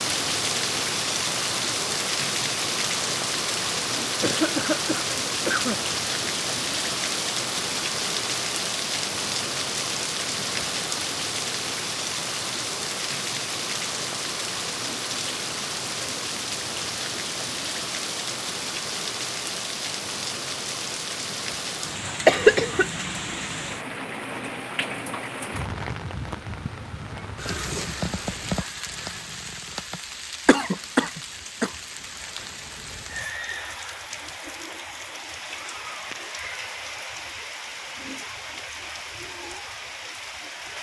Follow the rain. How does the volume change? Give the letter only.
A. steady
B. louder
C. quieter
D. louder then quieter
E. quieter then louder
C.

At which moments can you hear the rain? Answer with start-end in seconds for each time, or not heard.
0.0-40.7.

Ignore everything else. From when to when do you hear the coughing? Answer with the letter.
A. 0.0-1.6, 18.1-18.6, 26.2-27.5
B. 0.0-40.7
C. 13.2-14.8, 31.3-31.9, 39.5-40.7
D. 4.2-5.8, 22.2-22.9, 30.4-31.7
D.